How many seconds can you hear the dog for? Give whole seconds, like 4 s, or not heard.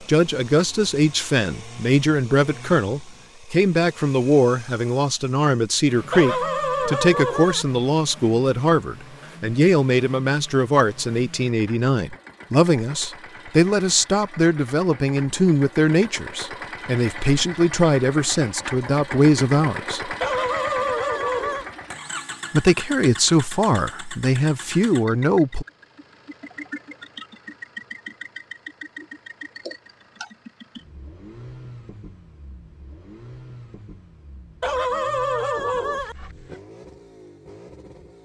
5 s.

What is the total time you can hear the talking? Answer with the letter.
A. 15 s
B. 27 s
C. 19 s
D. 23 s
D.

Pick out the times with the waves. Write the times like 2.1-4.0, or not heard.
not heard.